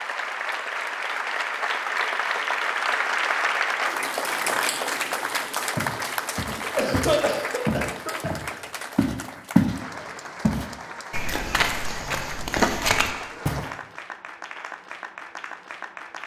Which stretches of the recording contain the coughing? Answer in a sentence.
You can hear the coughing from 6.5 to 8.3 s.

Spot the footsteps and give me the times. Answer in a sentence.
You can hear the footsteps from 5.8 to 9.8 s and from 10.4 to 13.8 s.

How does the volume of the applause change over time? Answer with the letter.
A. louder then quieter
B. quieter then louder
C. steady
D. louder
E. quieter
E.